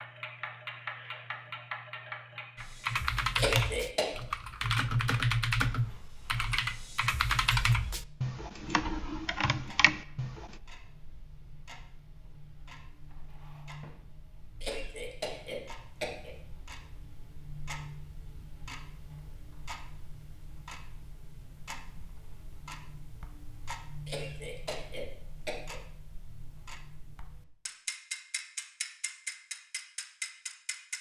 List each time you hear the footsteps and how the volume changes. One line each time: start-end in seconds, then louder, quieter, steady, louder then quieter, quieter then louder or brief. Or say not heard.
not heard.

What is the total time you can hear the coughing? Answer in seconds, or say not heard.
4 s.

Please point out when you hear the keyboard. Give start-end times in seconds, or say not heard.
2.5-10.6.